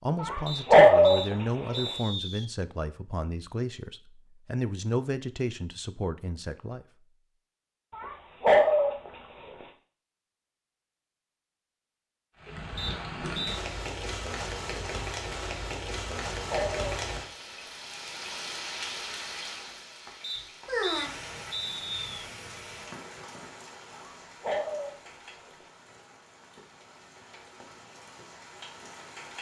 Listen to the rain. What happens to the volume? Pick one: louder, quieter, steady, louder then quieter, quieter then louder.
quieter.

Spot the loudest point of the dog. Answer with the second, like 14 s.
1 s.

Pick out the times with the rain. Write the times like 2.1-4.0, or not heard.
12.4-29.3.